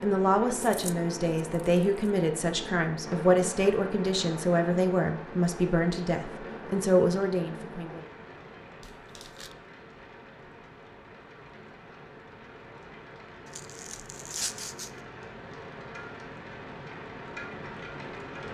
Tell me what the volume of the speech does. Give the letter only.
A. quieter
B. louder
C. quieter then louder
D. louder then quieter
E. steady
E.